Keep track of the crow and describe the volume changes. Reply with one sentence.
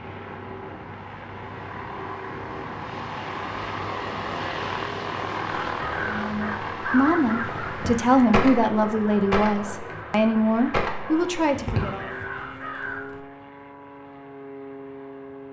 The volume of the crow stays about the same.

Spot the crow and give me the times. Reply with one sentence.
The crow can be heard from 5.5 to 13.2 s.